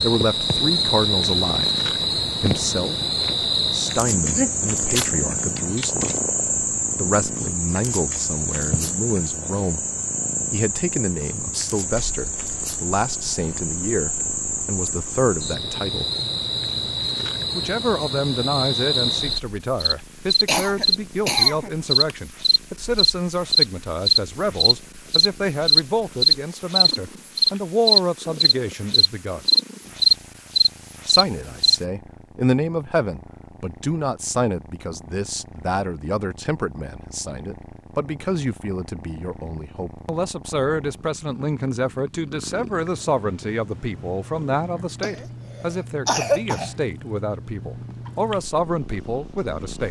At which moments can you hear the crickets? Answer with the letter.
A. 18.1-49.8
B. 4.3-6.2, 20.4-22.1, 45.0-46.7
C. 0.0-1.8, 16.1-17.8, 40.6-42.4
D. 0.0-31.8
D.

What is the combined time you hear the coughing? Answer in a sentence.
The coughing can be heard for 5 seconds in total.